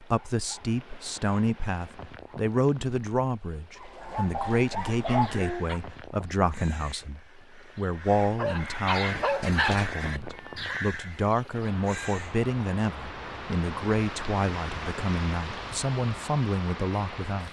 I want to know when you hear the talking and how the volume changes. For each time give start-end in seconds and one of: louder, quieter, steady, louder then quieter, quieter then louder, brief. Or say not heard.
0.0-17.4 steady.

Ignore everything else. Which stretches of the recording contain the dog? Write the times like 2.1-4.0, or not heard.
3.8-5.8, 8.2-10.8.